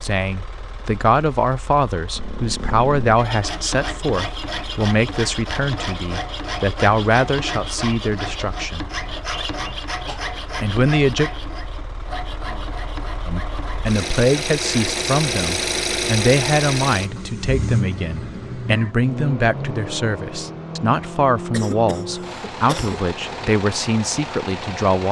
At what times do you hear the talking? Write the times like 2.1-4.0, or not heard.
0.0-8.9, 10.6-11.3, 13.2-25.0.